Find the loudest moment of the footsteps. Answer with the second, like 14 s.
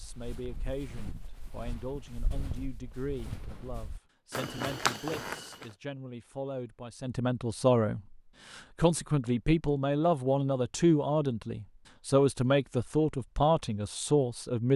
5 s.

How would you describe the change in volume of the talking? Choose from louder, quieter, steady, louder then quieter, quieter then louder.
louder.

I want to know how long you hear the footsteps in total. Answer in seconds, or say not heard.
6 s.